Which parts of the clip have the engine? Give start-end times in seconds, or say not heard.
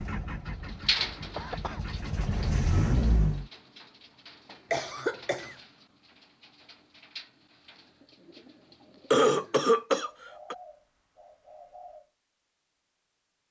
0.0-3.5.